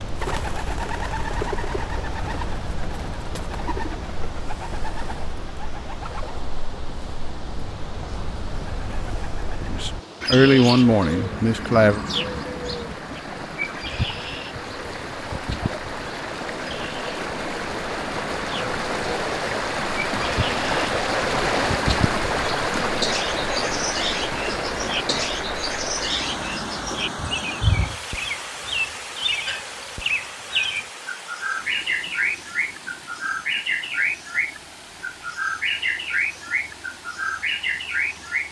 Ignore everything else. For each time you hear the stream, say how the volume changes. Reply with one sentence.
You can hear the stream from 0.0 to 38.4 s, getting louder then quieter.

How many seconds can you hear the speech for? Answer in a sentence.
The speech can be heard for 2 seconds in total.